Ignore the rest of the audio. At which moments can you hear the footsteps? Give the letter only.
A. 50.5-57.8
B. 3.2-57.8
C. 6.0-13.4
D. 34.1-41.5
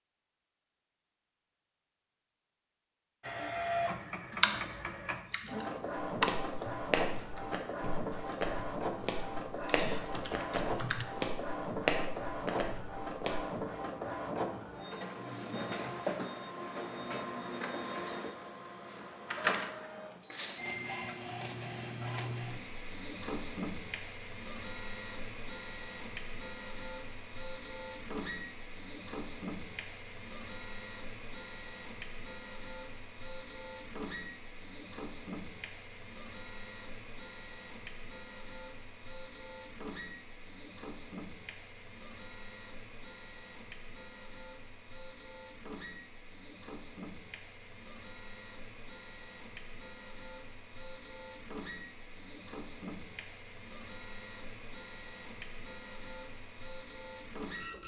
C.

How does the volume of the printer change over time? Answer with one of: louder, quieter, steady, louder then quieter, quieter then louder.
quieter.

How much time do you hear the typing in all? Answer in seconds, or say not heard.
7 s.